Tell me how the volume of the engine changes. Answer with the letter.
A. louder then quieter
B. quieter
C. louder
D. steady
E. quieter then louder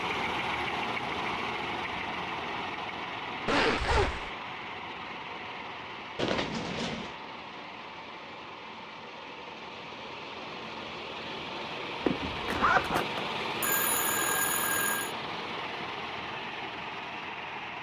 E.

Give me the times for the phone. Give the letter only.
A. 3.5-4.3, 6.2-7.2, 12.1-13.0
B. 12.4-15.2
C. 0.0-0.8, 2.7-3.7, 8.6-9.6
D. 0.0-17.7
B.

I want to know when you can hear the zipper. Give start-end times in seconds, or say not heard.
3.5-4.3, 6.2-7.2, 12.1-13.0.